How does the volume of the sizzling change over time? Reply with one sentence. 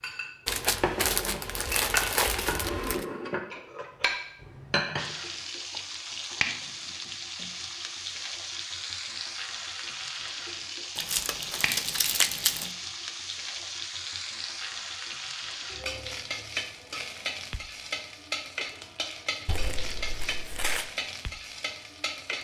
The volume of the sizzling stays about the same.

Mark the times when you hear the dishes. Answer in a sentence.
The dishes can be heard from 0.0 to 5.2 s.